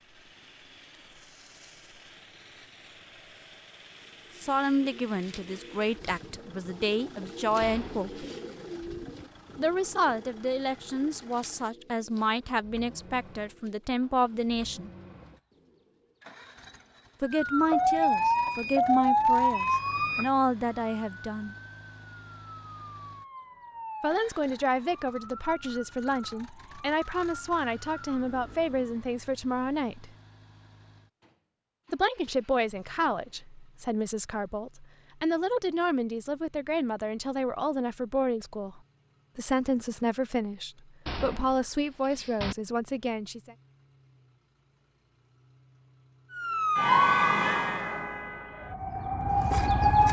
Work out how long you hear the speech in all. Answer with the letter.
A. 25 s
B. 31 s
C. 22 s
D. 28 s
B.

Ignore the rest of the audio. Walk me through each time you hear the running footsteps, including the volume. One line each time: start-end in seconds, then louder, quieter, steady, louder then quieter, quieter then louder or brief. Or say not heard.
not heard.